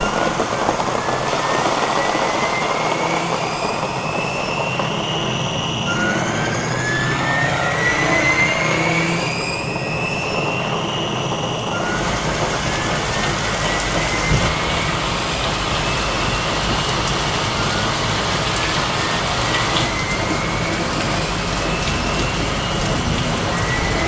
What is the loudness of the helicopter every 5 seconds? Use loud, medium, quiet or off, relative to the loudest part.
medium, loud, medium, medium, medium.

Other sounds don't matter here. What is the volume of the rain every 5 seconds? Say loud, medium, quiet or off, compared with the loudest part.
loud, medium, loud, loud, loud.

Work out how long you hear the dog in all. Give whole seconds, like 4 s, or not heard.
not heard.